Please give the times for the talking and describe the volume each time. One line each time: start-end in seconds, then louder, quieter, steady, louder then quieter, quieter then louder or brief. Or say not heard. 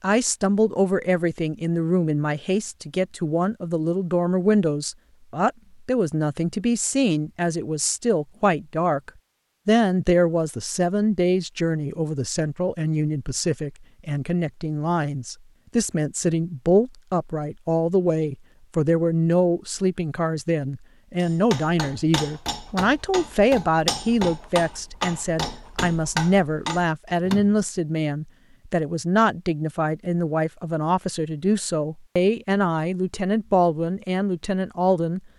0.0-35.2 steady.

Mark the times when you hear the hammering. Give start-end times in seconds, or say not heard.
21.2-27.6.